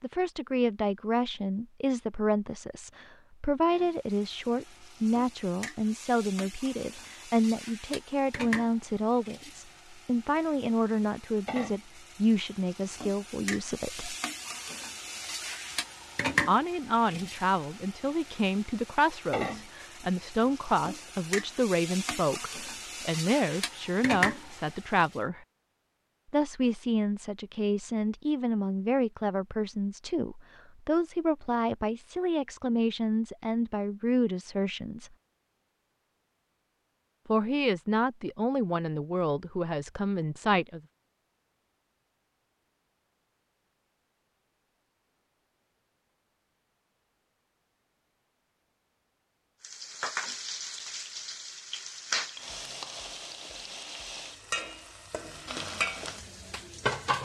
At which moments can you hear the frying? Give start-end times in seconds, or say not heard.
3.7-25.2, 49.6-57.2.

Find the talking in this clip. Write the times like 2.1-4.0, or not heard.
0.0-14.2, 16.4-25.4, 26.3-35.1, 37.2-40.8.